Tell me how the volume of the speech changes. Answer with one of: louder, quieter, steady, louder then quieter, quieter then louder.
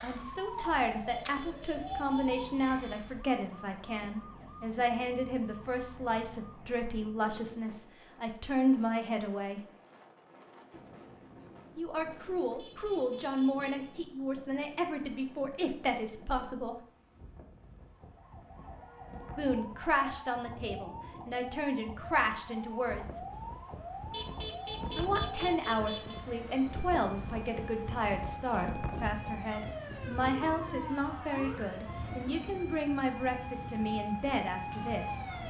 steady.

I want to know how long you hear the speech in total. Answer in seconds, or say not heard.
29 s.